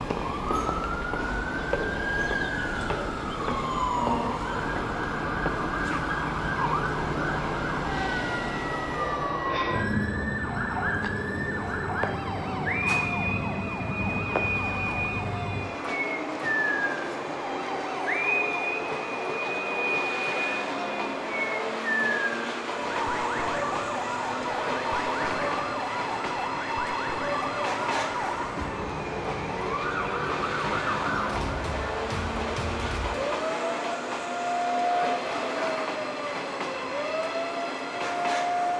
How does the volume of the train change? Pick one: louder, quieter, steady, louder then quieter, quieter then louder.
steady.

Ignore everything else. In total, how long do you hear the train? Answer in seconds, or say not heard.
39 s.